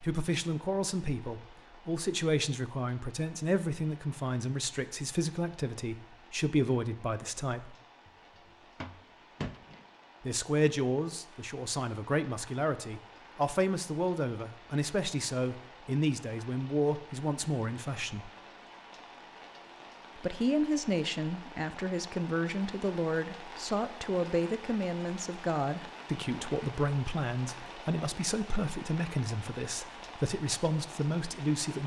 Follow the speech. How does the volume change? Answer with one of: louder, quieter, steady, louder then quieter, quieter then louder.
steady.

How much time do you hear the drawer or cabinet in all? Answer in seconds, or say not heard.
2 s.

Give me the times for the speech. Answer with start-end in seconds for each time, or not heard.
0.0-7.8, 10.2-18.3, 20.1-31.8.